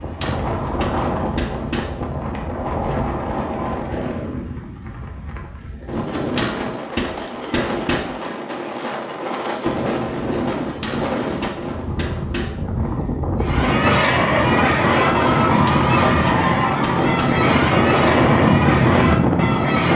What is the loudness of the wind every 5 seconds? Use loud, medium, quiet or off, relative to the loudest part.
medium, medium, medium, loud.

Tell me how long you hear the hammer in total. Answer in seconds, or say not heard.
7 s.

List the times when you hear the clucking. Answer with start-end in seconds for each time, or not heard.
13.4-19.9.